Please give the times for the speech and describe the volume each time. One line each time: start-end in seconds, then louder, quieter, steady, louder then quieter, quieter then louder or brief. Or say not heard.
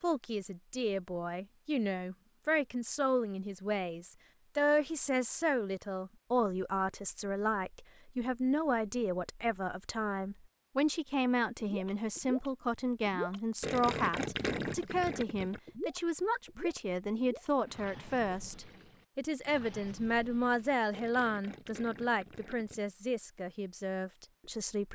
0.0-24.9 steady.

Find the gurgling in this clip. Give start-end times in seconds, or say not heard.
11.6-22.8.